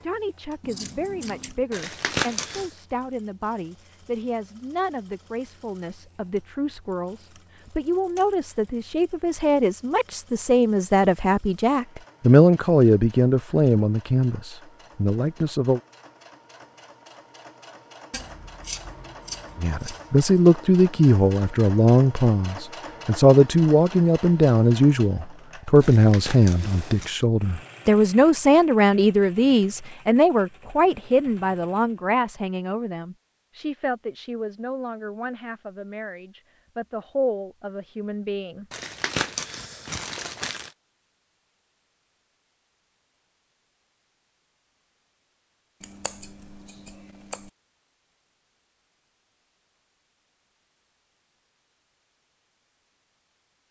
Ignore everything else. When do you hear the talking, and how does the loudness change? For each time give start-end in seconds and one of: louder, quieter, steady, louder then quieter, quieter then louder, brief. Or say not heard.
0.0-15.8 louder
19.6-38.6 quieter.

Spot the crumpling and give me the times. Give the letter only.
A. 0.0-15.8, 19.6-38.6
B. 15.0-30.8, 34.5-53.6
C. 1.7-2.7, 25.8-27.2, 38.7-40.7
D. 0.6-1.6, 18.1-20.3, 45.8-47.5
C.